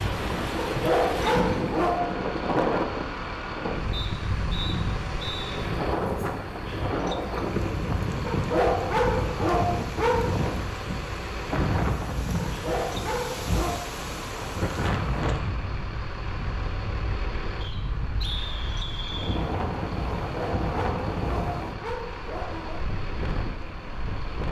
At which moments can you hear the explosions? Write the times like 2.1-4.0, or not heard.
not heard.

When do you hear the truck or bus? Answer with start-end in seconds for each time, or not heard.
0.1-24.4.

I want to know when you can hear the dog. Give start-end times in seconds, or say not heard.
0.7-2.2, 8.2-10.5, 12.3-13.9, 20.2-22.9.